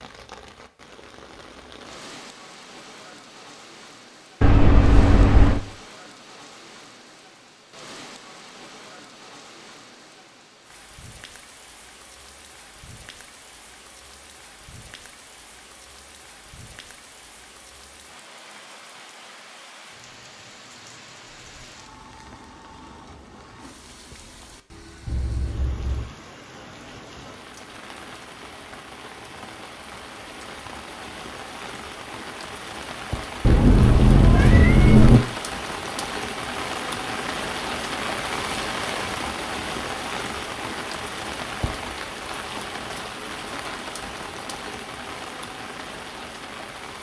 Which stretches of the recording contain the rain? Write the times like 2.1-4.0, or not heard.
0.0-46.9.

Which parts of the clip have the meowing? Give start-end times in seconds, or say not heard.
4.4-5.6, 25.1-26.1, 33.5-35.2.